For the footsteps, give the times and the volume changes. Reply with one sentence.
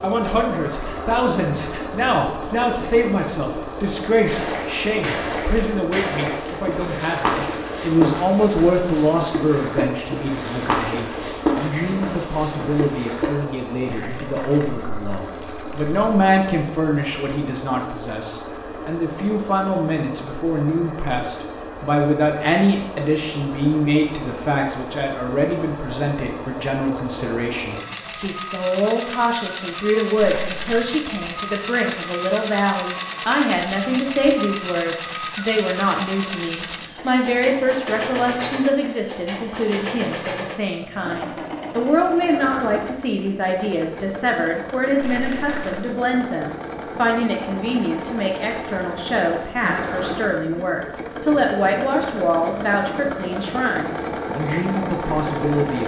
The footsteps can be heard from 4.2 to 13.3 s, at a steady volume.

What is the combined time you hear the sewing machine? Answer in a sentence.
The sewing machine can be heard for 56 seconds in total.